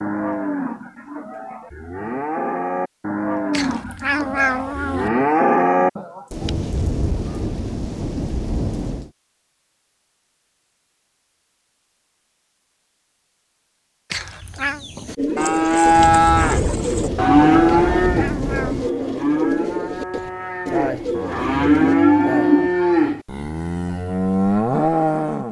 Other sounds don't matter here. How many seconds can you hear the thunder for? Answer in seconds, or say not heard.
6 s.